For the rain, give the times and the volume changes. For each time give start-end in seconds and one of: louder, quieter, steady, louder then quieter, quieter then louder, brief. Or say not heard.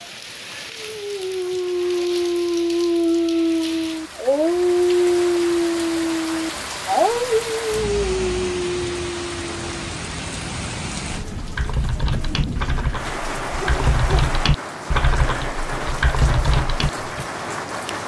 0.0-18.0 louder.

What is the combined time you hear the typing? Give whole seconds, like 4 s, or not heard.
6 s.